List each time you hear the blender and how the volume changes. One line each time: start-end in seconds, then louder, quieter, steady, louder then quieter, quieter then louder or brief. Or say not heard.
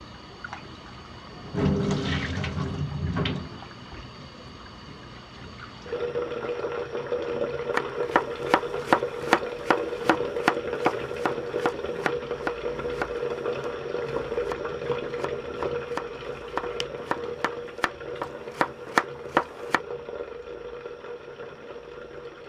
not heard.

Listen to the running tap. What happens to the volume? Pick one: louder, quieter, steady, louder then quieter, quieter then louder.
quieter.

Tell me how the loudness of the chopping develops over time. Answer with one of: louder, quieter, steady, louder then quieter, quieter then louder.
quieter then louder.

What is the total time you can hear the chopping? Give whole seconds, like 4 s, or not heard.
12 s.